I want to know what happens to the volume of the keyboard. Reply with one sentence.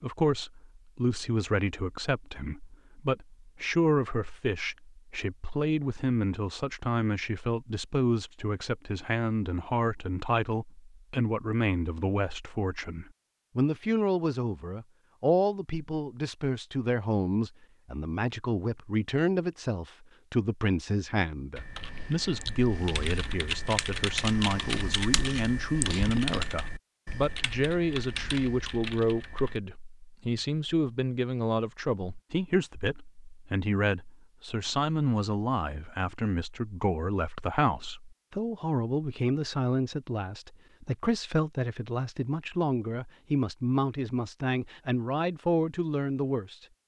The loudness of the keyboard goes up, then down.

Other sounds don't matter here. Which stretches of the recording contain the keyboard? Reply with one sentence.
The keyboard can be heard from 21.6 to 29.6 s.